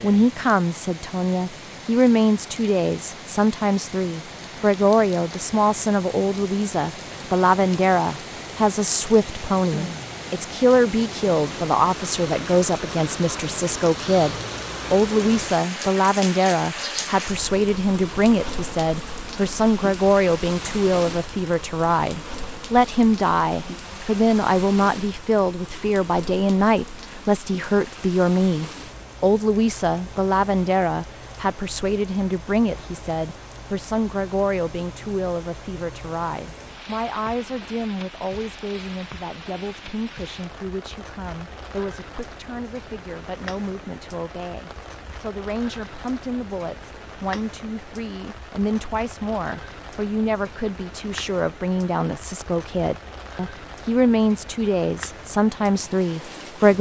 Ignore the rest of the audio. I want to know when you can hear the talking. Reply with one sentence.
You can hear the talking from 0.0 to 56.7 s.